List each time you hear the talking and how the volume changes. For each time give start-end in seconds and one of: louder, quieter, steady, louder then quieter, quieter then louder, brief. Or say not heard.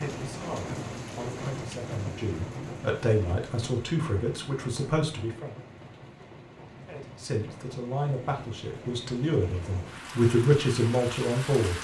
0.0-5.5 louder
6.8-11.7 louder.